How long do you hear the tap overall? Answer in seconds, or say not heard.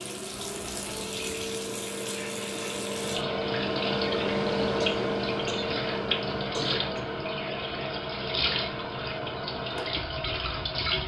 11 s.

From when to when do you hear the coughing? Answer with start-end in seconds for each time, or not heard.
4.8-5.8, 6.5-7.0.